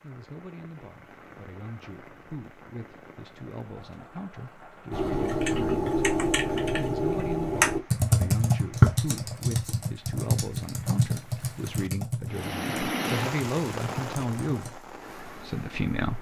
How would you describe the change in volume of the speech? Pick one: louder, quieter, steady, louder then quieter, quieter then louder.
louder.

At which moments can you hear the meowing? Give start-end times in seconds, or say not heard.
not heard.